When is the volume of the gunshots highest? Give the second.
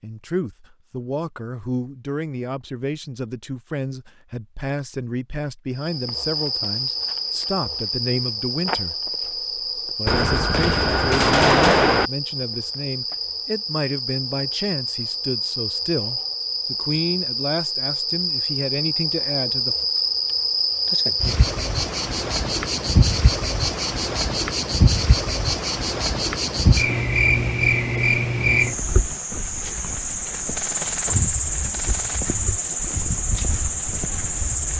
12 s.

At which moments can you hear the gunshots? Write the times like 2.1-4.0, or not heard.
10.1-12.1, 30.6-32.2.